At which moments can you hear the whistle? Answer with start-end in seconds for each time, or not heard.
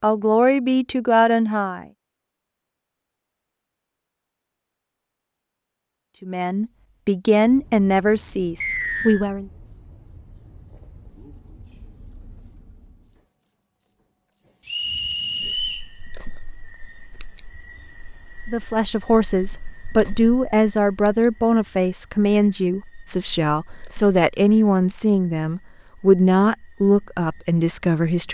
8.6-9.2, 14.7-15.8.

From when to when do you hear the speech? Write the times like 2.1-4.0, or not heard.
0.0-1.9, 6.2-9.5, 18.4-28.2.